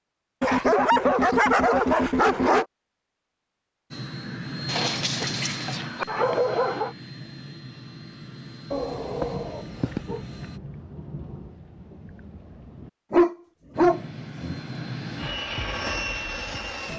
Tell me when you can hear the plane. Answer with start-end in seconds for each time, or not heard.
3.9-10.6, 13.7-16.9.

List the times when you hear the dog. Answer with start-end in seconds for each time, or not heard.
0.4-2.6, 4.7-6.9, 8.7-10.2, 13.1-14.6.